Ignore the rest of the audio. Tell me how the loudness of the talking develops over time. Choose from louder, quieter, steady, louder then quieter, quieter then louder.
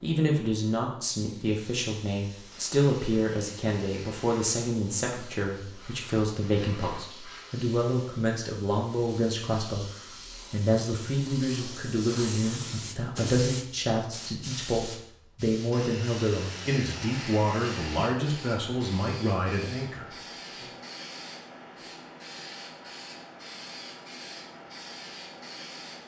steady.